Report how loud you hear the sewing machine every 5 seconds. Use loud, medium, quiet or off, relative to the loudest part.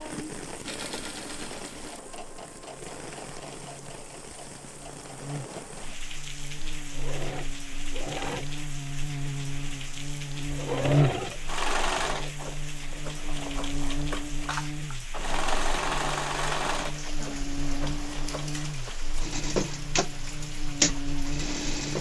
quiet, medium, loud, loud, loud.